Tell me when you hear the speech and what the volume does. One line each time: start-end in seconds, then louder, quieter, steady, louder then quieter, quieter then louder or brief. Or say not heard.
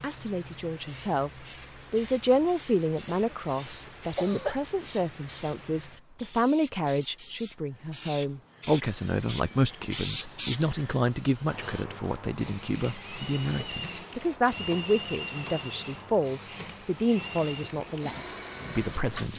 0.0-19.3 steady.